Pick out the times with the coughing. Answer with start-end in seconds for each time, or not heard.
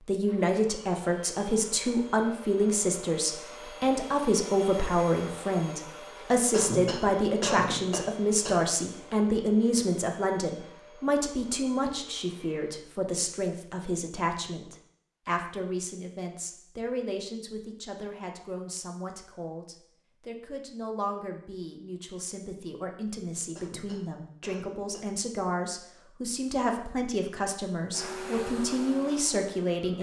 6.5-8.6, 23.6-25.1.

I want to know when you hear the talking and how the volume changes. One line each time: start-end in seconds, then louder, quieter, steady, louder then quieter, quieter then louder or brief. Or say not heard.
0.1-29.9 quieter then louder.